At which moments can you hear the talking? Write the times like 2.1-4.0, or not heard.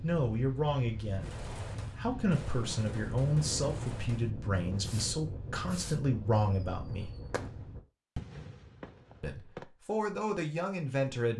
0.0-7.1, 9.2-11.3.